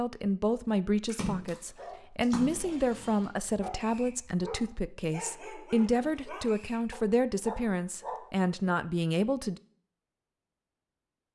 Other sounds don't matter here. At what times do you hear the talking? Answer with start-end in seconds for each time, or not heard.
0.0-9.6.